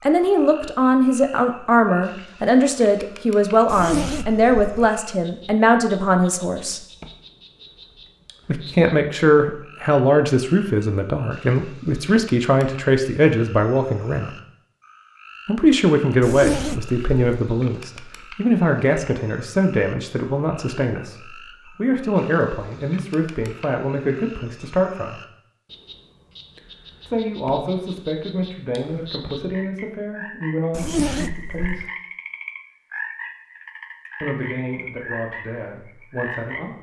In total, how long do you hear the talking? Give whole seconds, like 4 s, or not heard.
30 s.